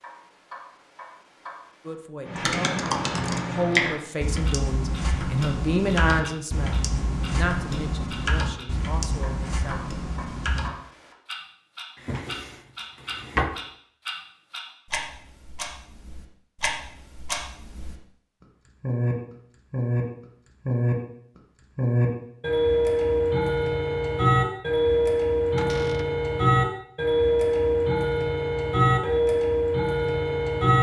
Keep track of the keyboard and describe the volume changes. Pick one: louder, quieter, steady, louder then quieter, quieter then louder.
quieter.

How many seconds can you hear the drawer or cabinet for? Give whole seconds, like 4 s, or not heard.
2 s.